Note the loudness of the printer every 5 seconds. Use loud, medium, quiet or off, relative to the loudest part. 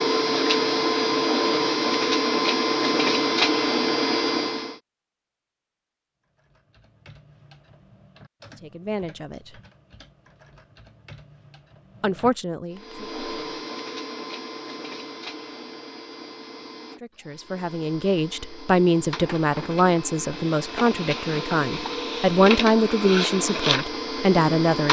loud, off, quiet, quiet, medium.